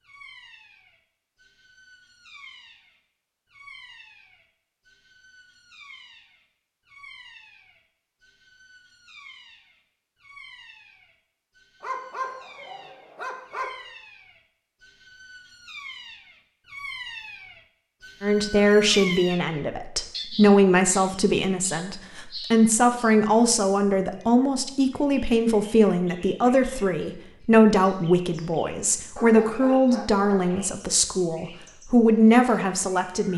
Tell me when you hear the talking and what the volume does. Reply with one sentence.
You can hear the talking from 18.2 to 33.3 s, at a steady volume.